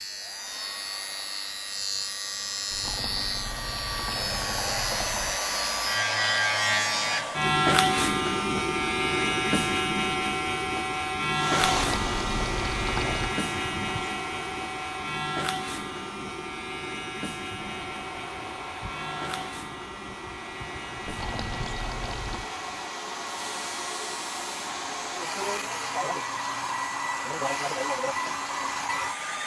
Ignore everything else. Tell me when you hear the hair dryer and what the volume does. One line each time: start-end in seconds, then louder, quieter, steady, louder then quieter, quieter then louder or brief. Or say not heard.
0.0-7.5 louder
11.3-29.4 quieter then louder.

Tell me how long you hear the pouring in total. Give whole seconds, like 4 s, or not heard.
6 s.